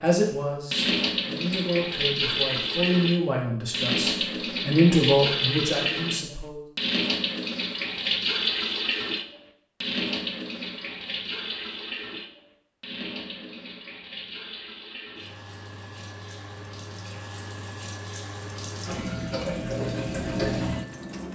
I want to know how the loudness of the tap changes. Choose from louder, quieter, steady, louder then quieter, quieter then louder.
quieter then louder.